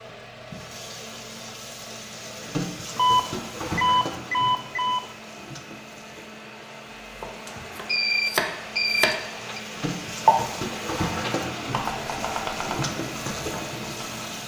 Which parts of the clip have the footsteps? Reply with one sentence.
The footsteps can't be heard in this clip.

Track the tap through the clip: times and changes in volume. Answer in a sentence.
You can hear the tap from 0.1 to 14.4 s, getting quieter then louder.